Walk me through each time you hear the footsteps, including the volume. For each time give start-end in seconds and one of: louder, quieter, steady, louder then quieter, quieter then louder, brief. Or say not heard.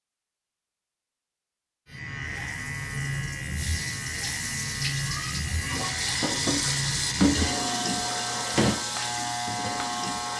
not heard.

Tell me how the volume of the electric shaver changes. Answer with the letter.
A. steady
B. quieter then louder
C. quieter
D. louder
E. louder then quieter
A.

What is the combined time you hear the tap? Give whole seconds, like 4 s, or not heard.
8 s.